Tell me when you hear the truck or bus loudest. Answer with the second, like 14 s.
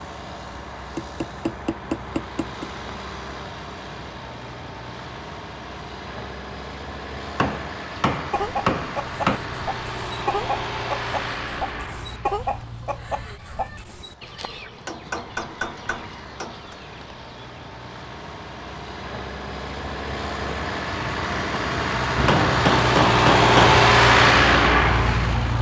24 s.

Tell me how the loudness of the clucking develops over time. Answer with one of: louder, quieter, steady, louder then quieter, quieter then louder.
quieter.